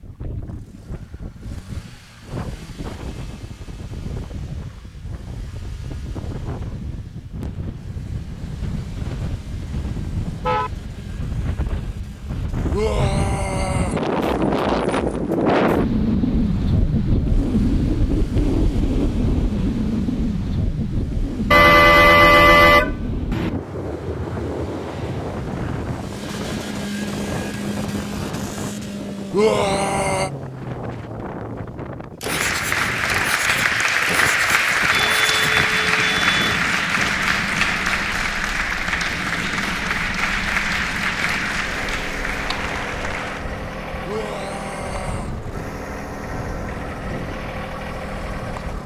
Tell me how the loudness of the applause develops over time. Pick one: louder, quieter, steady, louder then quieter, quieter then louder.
quieter.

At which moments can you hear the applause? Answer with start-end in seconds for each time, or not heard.
32.2-43.5.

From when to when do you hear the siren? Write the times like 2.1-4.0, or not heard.
not heard.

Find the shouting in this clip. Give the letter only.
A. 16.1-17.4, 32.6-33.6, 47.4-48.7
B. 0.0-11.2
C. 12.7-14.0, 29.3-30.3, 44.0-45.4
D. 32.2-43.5
C.